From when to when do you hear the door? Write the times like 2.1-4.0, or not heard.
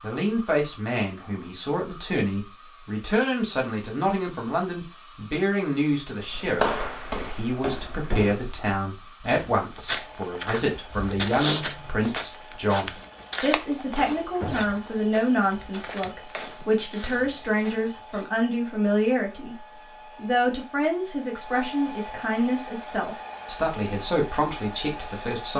8.0-8.4, 14.3-15.2.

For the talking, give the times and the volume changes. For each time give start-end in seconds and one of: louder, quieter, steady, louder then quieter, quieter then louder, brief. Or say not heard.
0.0-25.5 steady.